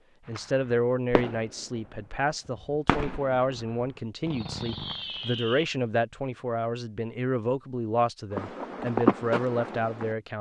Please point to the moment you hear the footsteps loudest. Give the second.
9 s.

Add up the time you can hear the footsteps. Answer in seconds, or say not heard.
2 s.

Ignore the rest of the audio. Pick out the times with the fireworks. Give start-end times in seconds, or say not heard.
0.3-5.7.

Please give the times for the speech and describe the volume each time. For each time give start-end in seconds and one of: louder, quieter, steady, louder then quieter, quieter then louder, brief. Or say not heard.
0.2-10.3 steady.